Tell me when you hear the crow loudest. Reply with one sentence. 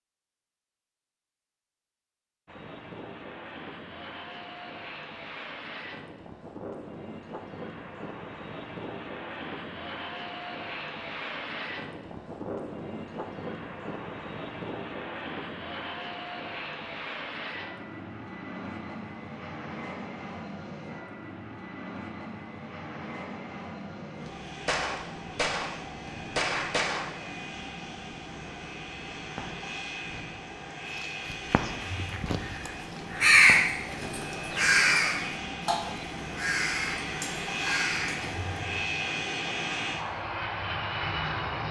The loudest moment of the crow is at 33 seconds.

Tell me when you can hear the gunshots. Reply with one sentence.
You can hear the gunshots from 24.2 to 25.7 s and from 26.4 to 27.1 s.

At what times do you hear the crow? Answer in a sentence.
You can hear the crow from 31.8 to 38.5 s.